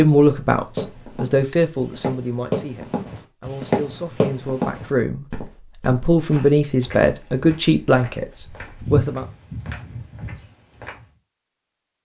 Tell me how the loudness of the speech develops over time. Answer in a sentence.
The volume of the speech goes down, then up.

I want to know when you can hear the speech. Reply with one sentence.
The speech can be heard from 0.0 to 9.2 s.